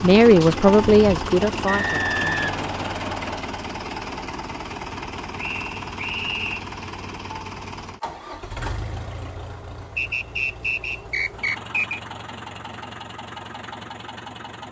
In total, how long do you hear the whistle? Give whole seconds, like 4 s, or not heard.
5 s.